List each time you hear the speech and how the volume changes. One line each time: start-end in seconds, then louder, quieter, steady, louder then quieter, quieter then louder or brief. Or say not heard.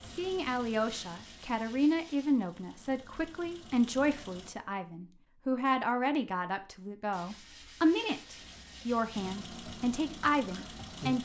0.1-11.1 steady.